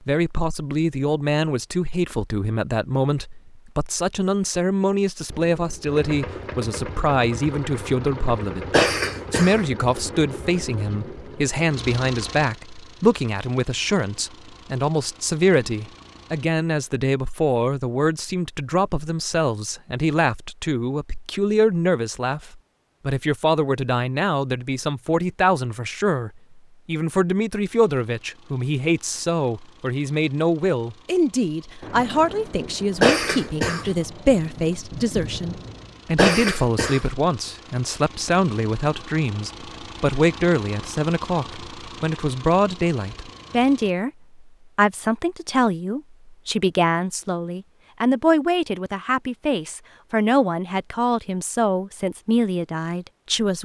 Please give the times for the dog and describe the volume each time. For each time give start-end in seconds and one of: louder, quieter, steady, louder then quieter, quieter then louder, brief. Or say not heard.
not heard.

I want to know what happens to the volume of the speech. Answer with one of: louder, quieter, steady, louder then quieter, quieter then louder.
steady.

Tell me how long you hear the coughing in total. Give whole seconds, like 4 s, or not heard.
3 s.